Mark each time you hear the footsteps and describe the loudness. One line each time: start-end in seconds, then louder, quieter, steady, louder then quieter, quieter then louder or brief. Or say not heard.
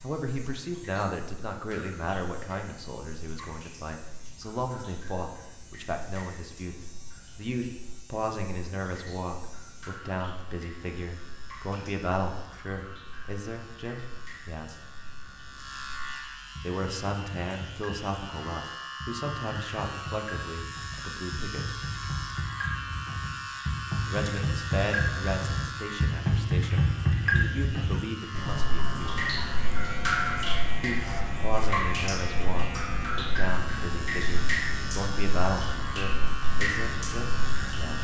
not heard.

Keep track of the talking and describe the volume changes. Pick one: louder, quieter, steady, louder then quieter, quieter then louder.
steady.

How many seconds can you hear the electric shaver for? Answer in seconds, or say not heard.
38 s.